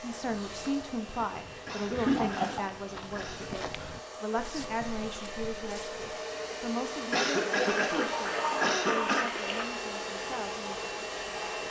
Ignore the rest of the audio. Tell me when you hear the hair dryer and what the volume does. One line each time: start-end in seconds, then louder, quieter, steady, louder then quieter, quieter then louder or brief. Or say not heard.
0.0-11.6 louder.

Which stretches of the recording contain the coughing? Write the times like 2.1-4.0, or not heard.
1.6-3.5, 7.1-9.3.